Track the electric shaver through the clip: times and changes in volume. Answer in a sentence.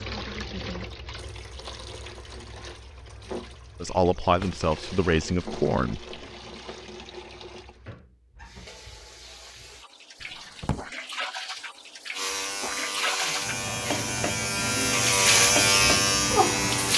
The electric shaver can be heard from 12.1 to 16.9 s, getting louder.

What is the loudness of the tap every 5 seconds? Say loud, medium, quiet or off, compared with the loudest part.
medium, quiet, medium, loud.